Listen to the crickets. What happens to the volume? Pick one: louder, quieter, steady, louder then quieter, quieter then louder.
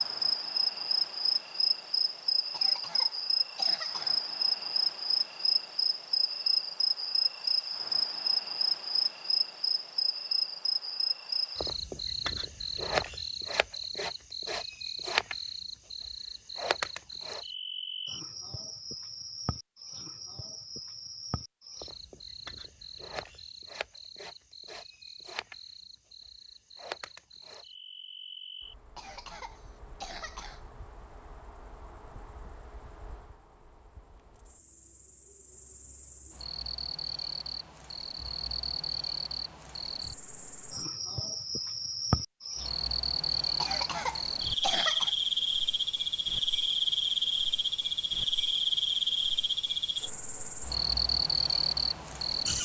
quieter then louder.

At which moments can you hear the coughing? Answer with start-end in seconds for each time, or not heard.
2.5-4.2, 28.9-30.6, 43.5-45.1.